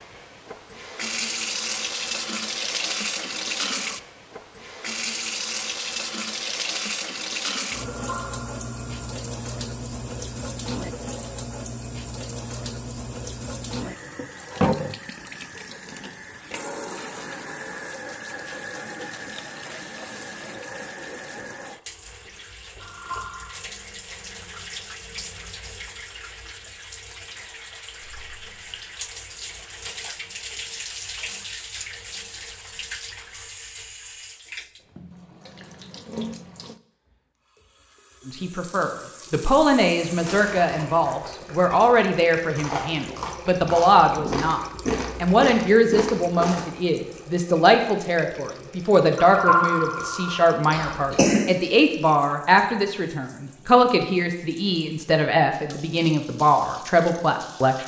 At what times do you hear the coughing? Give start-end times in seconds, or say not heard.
50.7-51.5.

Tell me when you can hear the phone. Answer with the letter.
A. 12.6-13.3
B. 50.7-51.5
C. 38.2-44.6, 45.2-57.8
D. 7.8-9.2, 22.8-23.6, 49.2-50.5
D.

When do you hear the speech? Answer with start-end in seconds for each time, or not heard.
38.2-44.6, 45.2-57.8.